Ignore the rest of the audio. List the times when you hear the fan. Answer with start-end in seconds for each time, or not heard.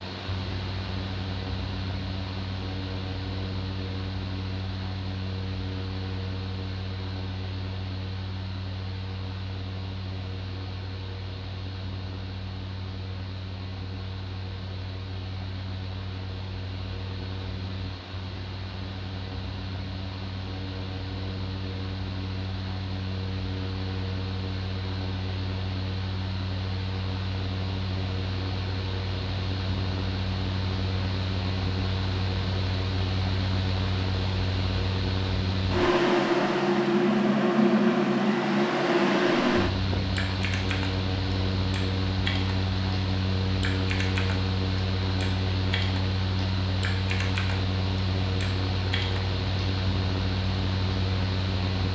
0.0-51.8.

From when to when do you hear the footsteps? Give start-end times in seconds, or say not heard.
not heard.